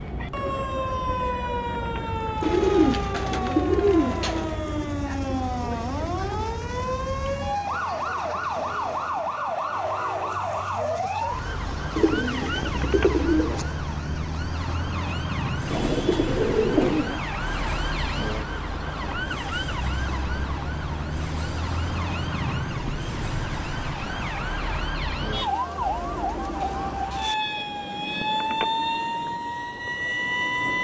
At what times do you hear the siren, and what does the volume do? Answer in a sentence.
You can hear the siren from 0.0 to 30.7 s, at a steady volume.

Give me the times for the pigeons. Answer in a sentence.
You can hear the pigeons from 2.4 to 4.5 s, from 11.9 to 13.8 s, from 15.7 to 17.2 s and from 25.4 to 27.4 s.